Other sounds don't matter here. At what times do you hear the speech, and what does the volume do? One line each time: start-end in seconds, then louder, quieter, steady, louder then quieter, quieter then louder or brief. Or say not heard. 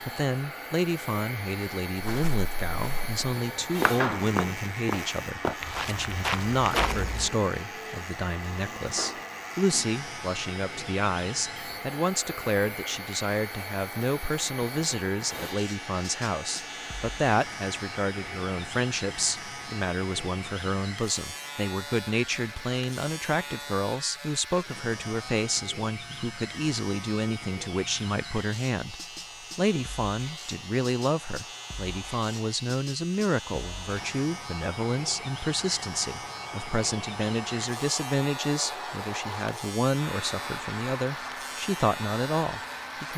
0.1-28.9 steady
29.6-43.1 steady.